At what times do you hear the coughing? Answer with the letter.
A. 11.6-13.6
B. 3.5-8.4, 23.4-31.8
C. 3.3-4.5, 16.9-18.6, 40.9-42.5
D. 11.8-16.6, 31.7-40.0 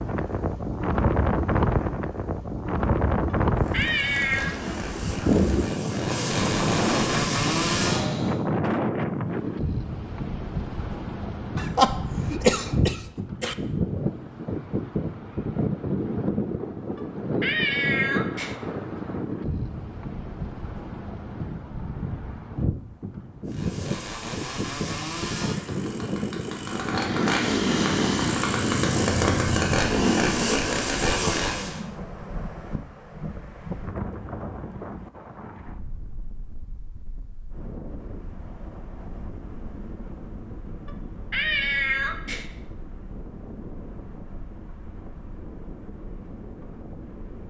A.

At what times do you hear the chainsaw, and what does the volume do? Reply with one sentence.
The chainsaw can be heard from 3.5 to 8.4 s, getting louder; and from 23.4 to 31.8 s, getting louder.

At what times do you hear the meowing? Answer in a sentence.
The meowing can be heard from 3.3 to 4.5 s, from 16.9 to 18.6 s and from 40.9 to 42.5 s.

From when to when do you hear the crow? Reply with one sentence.
The crow can't be heard in this clip.